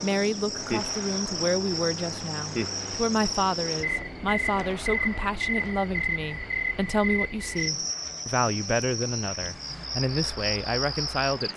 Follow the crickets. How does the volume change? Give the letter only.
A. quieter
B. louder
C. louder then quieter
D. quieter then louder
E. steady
E.